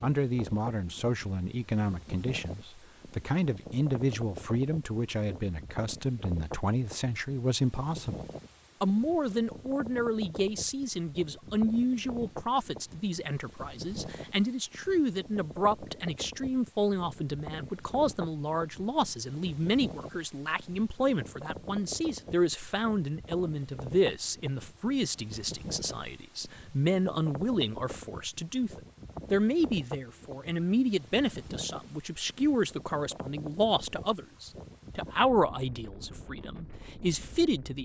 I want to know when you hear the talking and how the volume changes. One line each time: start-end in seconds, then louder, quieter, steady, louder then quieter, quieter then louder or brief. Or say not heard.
0.0-37.8 steady.